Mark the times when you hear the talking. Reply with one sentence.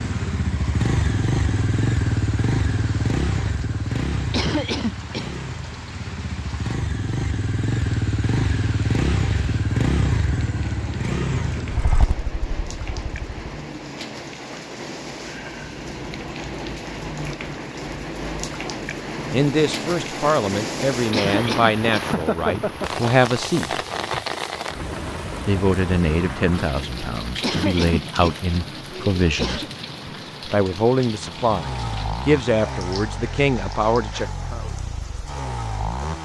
The talking can be heard from 19.3 to 23.8 s, from 25.4 to 29.6 s and from 30.4 to 34.6 s.